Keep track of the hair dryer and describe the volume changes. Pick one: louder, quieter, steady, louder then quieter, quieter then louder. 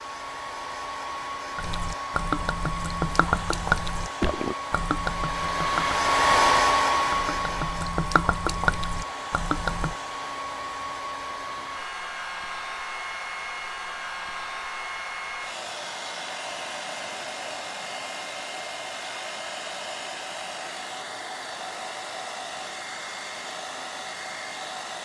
louder then quieter.